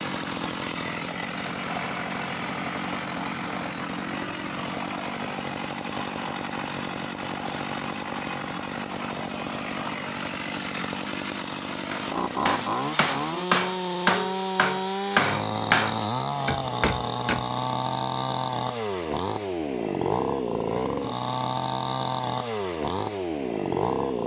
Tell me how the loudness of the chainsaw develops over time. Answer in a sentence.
The volume of the chainsaw stays about the same.